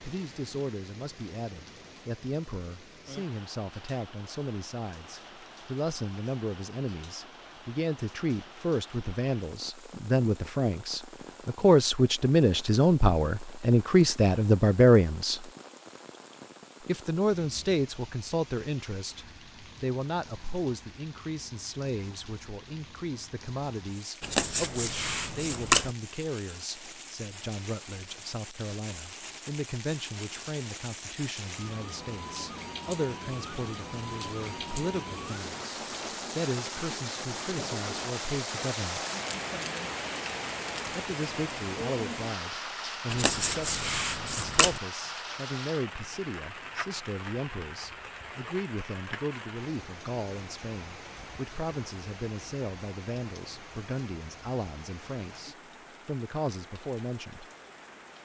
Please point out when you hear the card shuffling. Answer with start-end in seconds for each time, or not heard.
24.2-25.9, 43.1-44.8.